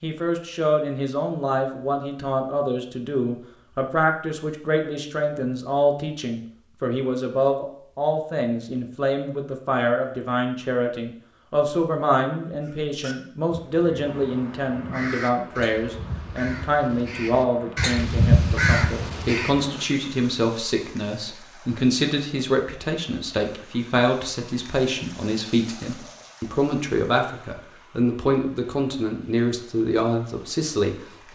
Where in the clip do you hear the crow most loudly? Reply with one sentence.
The loudest moment of the crow is at 18 seconds.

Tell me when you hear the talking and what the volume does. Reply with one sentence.
You can hear the talking from 0.0 to 31.2 s, at a steady volume.